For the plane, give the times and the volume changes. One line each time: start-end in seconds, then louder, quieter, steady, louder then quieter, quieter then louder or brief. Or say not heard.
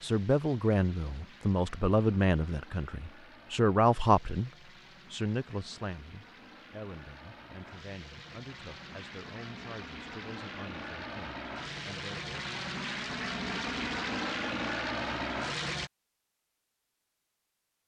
0.0-15.9 louder.